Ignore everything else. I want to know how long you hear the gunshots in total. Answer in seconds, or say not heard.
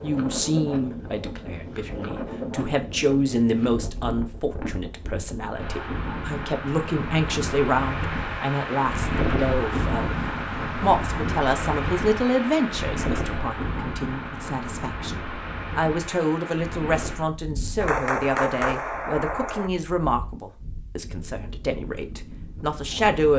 2 s.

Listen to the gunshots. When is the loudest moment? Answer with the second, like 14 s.
18 s.